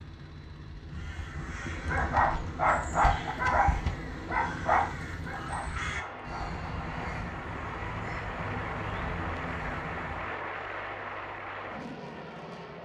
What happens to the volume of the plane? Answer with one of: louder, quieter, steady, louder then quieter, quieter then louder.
louder.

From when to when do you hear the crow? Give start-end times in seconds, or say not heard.
0.8-10.3.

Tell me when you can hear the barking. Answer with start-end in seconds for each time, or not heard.
1.7-6.6.